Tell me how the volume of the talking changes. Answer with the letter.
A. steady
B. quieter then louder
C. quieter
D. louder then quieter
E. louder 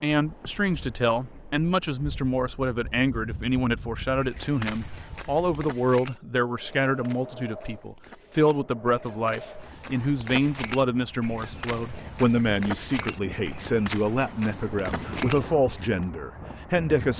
A.